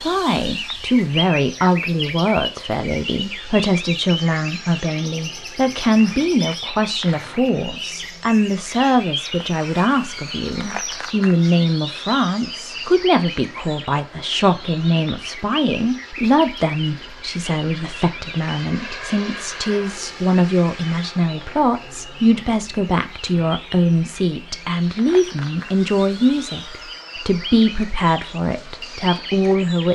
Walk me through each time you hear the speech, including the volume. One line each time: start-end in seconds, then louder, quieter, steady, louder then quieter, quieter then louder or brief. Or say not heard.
0.0-29.9 steady.